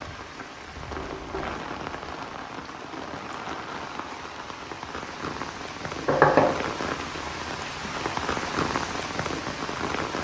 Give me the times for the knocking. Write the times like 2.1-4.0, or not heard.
0.9-1.6, 6.0-6.5.